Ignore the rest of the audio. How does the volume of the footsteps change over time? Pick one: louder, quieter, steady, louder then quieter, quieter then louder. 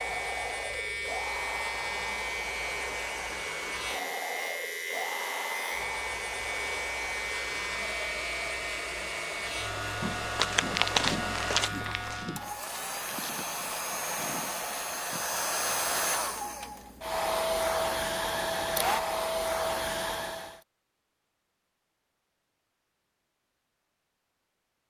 quieter.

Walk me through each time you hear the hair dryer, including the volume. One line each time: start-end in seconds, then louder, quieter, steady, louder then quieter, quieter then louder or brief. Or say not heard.
0.0-20.6 louder.